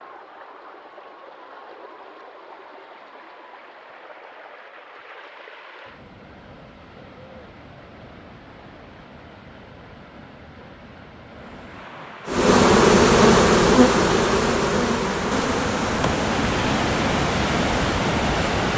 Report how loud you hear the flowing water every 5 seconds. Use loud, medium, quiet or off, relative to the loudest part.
quiet, quiet, quiet, loud.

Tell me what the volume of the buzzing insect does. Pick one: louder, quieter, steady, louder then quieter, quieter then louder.
quieter.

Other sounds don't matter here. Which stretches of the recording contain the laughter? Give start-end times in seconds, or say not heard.
not heard.